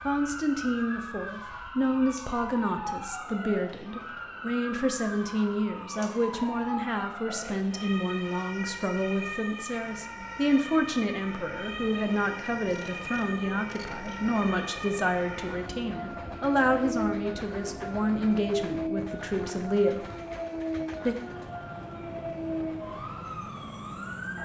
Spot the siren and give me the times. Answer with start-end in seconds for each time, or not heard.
0.0-24.4.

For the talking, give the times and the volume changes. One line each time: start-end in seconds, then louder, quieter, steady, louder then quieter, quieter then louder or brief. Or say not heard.
0.0-20.1 steady.